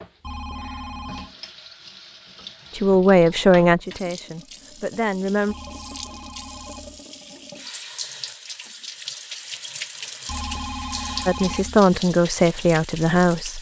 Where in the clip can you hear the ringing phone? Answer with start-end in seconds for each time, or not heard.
0.2-1.3, 5.5-7.0, 10.2-11.8.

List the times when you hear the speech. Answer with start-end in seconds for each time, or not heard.
2.8-5.5, 11.2-13.5.